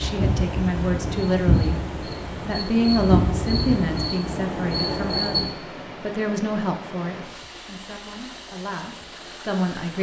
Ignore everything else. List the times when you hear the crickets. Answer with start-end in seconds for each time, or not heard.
0.0-5.5.